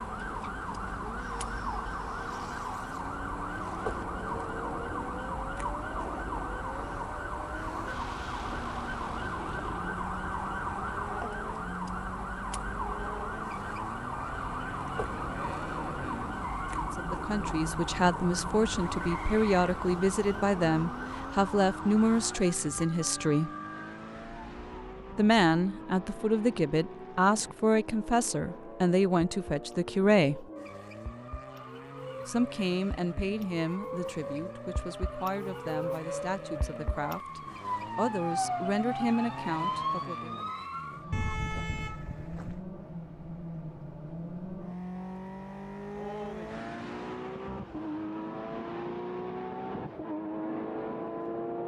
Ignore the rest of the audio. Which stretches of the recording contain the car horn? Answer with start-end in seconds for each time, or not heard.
41.1-42.6.